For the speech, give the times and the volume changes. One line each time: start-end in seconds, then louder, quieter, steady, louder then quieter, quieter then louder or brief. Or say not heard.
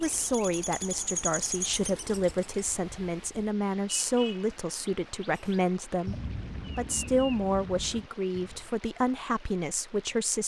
0.0-10.4 steady.